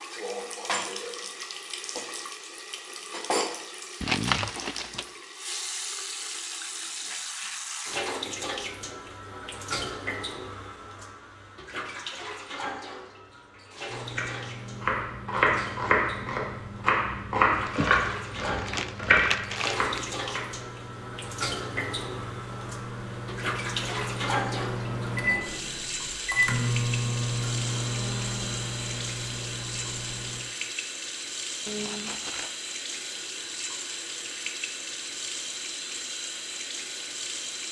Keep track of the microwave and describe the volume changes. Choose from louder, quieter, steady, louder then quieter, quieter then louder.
louder.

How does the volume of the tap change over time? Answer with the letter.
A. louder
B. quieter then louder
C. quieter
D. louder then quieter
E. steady
E.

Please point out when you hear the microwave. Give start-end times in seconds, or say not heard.
13.8-30.4.